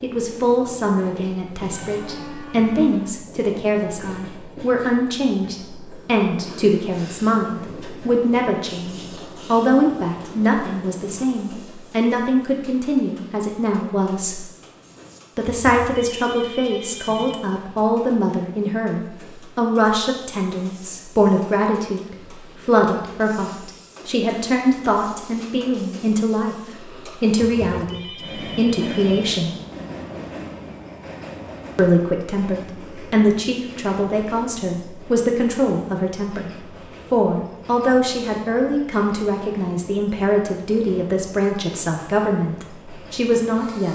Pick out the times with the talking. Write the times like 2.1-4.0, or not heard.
0.0-14.4, 15.3-26.6, 27.2-29.6, 31.8-36.5, 37.1-43.9.